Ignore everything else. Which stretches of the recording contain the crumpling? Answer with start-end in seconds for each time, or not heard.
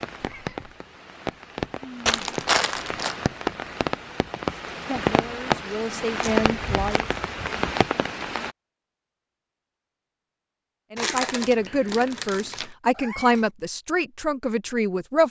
2.0-3.1, 6.2-7.3, 10.9-12.7.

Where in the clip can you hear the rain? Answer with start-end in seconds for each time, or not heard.
0.0-8.5.